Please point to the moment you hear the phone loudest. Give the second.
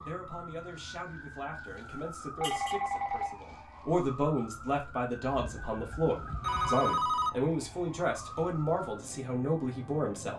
7 s.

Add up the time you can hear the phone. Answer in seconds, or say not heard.
3 s.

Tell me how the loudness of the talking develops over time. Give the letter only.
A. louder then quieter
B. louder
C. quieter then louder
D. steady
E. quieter
B.